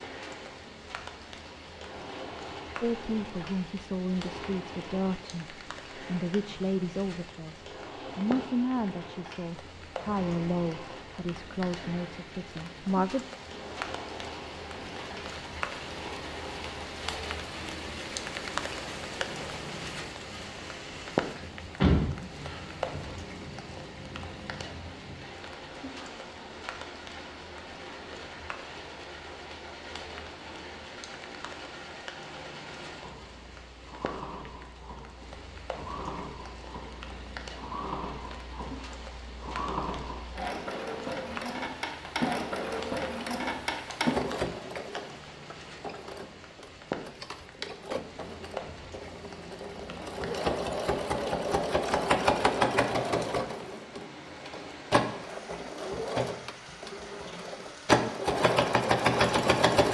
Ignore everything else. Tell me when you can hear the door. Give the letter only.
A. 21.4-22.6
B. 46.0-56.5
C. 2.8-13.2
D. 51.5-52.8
A.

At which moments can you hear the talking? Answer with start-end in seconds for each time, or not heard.
2.8-13.2.